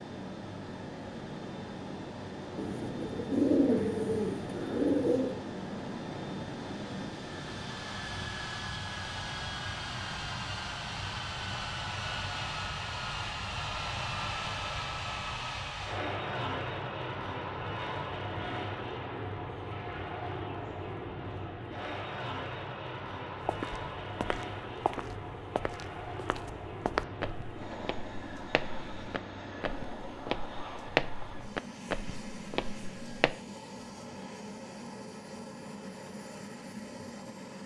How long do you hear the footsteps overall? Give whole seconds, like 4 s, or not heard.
10 s.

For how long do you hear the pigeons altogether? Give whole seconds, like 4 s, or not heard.
3 s.